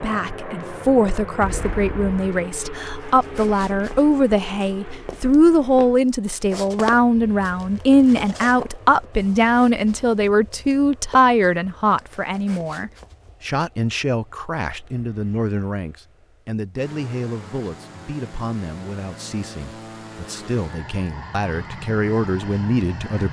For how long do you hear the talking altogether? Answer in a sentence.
The talking can be heard for 23 seconds in total.